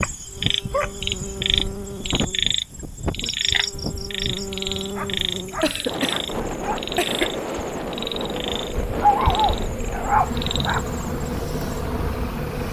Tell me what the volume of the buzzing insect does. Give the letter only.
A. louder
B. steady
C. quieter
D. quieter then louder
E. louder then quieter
A.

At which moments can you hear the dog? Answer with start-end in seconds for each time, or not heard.
0.7-1.2, 5.0-6.8, 9.0-10.8.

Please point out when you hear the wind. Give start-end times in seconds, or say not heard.
0.0-12.6.